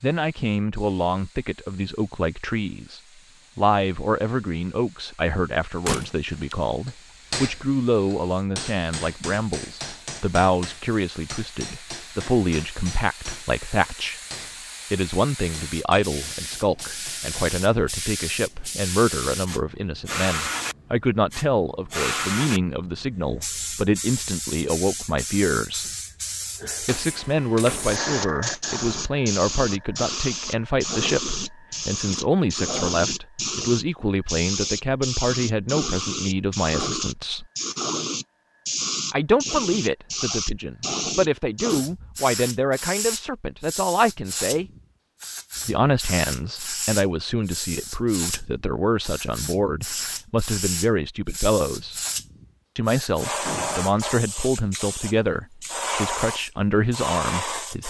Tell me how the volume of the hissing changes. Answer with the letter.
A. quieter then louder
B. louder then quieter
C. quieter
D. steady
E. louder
E.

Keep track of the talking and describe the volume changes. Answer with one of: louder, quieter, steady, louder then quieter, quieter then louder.
steady.